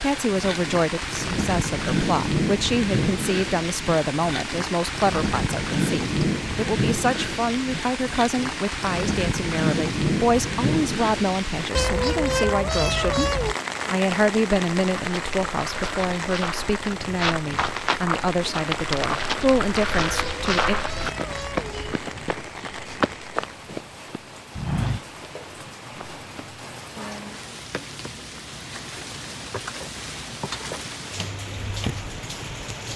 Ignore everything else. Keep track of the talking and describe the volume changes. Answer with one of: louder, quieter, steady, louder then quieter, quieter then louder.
steady.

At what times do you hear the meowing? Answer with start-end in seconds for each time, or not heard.
11.8-13.6, 20.1-21.9.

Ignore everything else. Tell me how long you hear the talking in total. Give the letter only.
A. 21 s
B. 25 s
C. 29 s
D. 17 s
A.